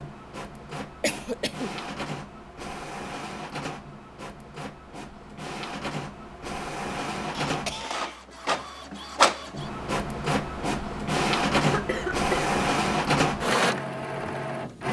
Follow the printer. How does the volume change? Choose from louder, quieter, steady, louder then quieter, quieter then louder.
louder.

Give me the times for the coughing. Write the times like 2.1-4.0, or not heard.
1.0-1.8, 7.3-8.2, 11.7-12.6.